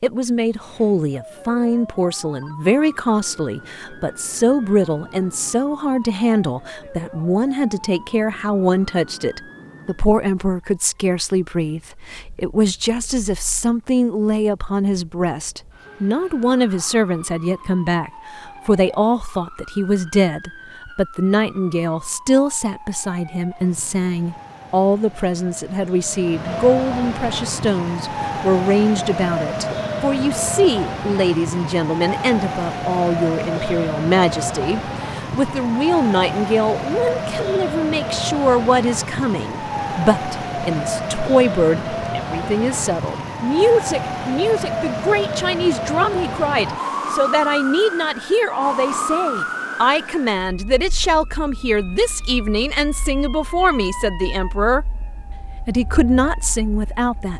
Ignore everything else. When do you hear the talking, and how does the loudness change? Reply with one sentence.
You can hear the talking from 0.0 to 54.9 s, at a steady volume; and briefly from 55.6 to 57.3 s.